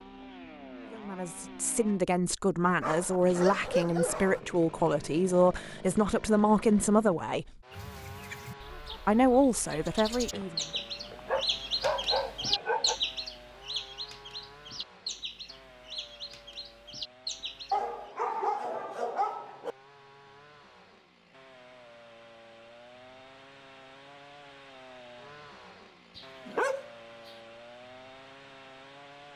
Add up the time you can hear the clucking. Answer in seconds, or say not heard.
10 s.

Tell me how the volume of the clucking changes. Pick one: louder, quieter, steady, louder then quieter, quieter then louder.
louder then quieter.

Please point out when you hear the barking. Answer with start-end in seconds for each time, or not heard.
2.8-4.4, 10.3-12.9, 17.7-19.8, 26.1-27.3.